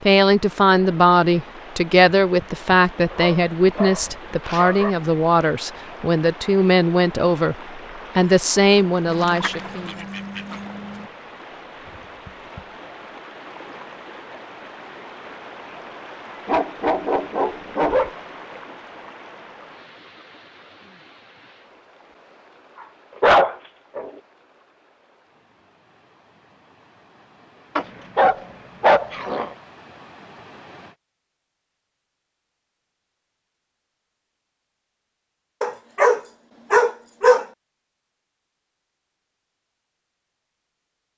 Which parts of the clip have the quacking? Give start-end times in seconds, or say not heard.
9.1-11.1.